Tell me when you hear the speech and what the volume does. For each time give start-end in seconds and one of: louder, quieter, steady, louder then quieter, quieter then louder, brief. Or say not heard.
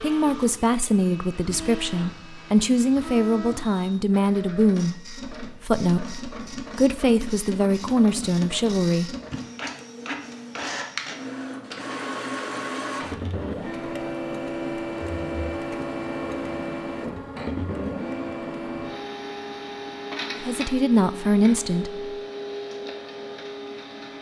0.0-9.2 steady
20.4-22.1 brief.